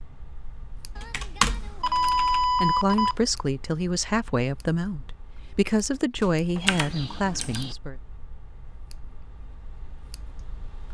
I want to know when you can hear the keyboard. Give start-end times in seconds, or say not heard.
0.9-2.5, 6.7-7.8.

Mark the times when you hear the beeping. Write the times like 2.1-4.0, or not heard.
1.8-3.1, 5.9-6.8.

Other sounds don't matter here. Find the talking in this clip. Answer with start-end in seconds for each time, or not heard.
2.6-8.0.